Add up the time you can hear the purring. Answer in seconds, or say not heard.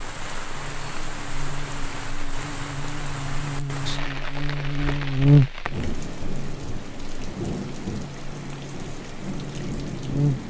not heard.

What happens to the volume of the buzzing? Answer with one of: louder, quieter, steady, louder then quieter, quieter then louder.
louder then quieter.